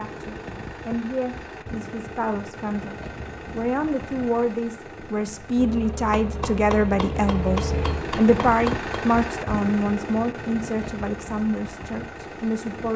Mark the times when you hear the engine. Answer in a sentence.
You can hear the engine from 0.0 to 12.9 s.